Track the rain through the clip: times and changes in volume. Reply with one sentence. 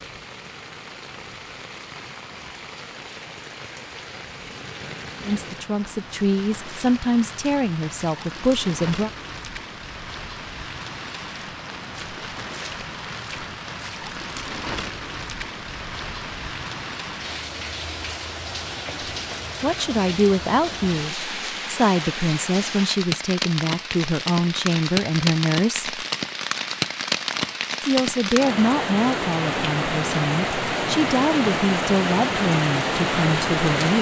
The rain can be heard from 0.0 to 33.9 s, getting louder.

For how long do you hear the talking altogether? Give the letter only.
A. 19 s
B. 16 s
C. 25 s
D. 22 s
B.